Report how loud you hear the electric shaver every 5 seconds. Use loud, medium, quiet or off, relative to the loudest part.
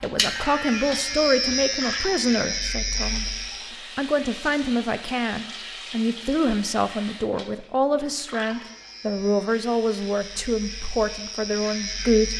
loud, quiet, medium.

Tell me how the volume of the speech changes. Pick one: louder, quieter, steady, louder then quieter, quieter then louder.
steady.